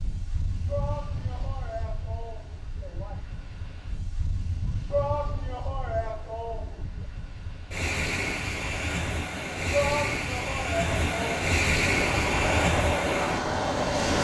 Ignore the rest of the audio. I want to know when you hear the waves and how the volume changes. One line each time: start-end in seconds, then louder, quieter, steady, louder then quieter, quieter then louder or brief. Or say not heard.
0.0-14.2 louder.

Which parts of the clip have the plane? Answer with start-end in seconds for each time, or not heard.
11.8-14.2.